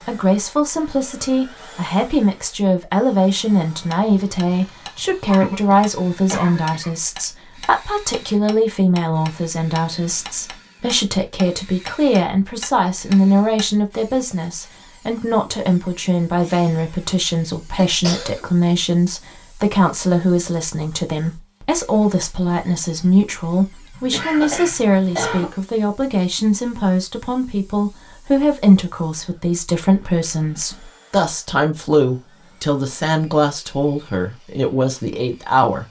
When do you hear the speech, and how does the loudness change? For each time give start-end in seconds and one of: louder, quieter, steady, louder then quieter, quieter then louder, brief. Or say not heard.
0.1-35.8 steady.